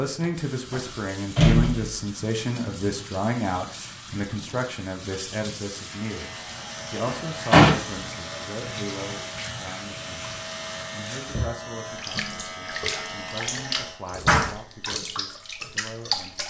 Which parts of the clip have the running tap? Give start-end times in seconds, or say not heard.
0.2-16.4.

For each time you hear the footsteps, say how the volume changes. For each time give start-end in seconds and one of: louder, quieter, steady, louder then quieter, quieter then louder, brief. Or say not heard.
not heard.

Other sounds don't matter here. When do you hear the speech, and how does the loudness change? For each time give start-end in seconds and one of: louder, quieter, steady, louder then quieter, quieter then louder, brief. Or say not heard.
0.0-16.4 quieter.